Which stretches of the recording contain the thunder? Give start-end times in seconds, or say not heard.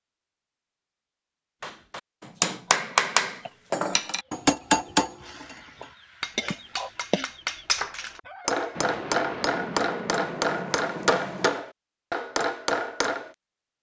8.8-11.7.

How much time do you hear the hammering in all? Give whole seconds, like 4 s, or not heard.
12 s.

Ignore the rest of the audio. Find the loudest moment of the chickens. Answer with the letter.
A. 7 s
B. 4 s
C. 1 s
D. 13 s
A.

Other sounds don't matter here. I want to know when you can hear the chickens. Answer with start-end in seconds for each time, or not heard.
3.4-8.7.